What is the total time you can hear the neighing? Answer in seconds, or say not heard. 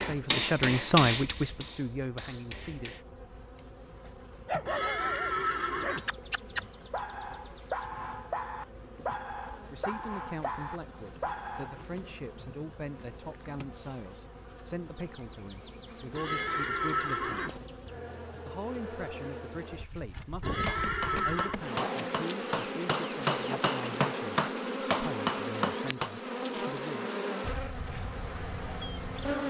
4 s.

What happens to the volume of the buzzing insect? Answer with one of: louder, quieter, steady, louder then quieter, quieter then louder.
louder.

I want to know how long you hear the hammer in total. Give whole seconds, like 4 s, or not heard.
9 s.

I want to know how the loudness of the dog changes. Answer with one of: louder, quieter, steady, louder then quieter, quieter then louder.
steady.